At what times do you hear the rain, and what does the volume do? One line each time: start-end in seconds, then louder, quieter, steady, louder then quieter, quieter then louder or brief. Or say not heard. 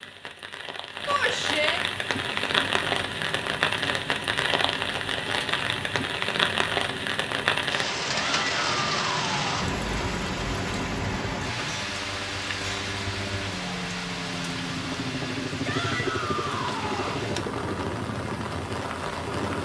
0.0-19.5 quieter.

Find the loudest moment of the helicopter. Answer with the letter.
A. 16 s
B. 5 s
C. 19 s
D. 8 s
A.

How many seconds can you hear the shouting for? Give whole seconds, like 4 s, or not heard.
4 s.